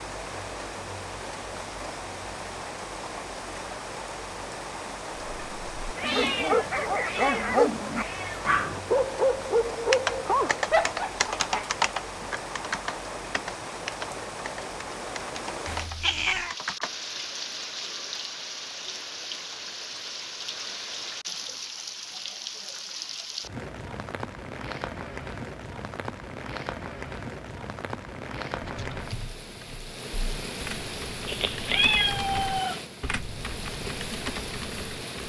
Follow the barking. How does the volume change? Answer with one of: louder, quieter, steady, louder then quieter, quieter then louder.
steady.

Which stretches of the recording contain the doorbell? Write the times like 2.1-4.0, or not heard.
not heard.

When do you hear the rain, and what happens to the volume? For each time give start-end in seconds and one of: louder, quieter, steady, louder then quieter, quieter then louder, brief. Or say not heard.
0.0-35.2 steady.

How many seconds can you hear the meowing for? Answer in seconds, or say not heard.
5 s.